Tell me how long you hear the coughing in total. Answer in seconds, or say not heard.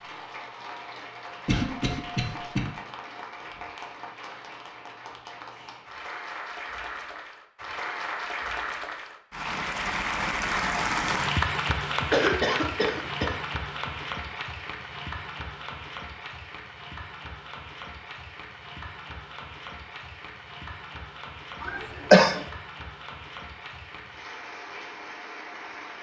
3 s.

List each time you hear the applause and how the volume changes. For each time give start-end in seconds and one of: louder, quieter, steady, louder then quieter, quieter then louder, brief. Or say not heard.
0.0-25.9 louder then quieter.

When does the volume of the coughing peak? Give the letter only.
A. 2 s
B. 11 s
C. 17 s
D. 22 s
D.